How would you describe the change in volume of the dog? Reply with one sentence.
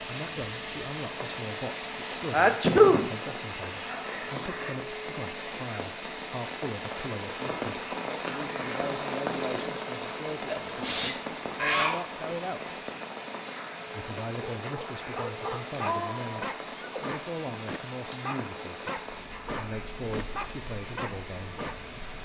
The volume of the dog stays about the same.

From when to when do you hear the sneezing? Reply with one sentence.
You can hear the sneezing from 2.3 to 3.1 s, from 10.5 to 12.0 s and from 15.8 to 17.1 s.